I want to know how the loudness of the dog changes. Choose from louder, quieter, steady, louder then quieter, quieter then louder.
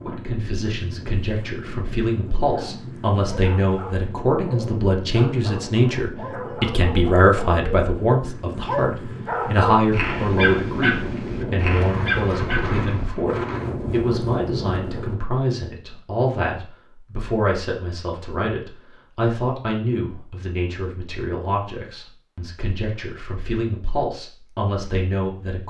louder.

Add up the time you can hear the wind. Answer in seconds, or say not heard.
15 s.